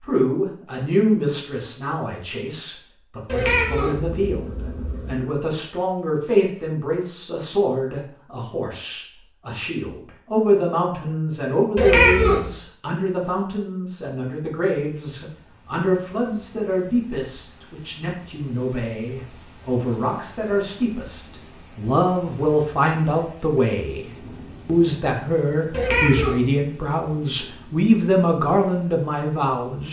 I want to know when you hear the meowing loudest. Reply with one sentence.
The loudest moment of the meowing is at 12 seconds.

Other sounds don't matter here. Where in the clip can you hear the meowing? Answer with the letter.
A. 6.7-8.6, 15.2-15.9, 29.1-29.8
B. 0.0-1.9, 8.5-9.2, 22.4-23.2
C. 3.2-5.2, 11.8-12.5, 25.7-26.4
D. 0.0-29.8
C.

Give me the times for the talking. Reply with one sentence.
You can hear the talking from 0.0 to 29.8 s.